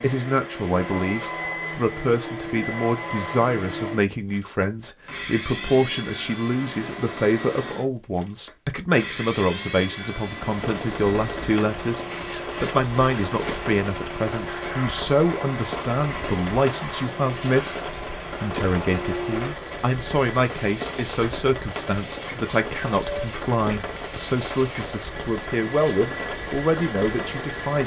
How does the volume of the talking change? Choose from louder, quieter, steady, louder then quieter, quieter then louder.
steady.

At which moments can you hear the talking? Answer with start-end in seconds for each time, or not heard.
0.0-27.8.